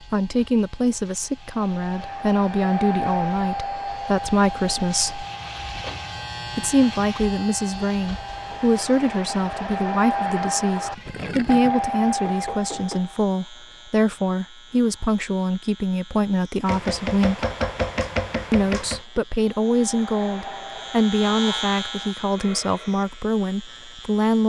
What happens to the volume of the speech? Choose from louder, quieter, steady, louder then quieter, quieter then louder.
steady.